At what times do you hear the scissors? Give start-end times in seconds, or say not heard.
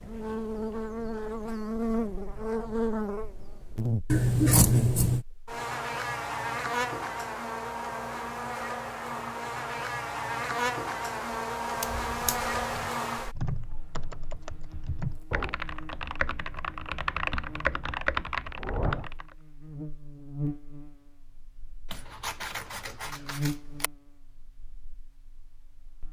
4.0-5.2, 11.8-12.5, 21.9-23.9.